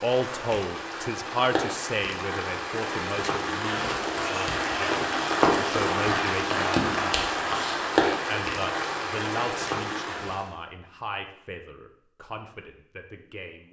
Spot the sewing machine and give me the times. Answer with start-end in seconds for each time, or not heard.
not heard.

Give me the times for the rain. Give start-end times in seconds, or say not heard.
0.0-10.6.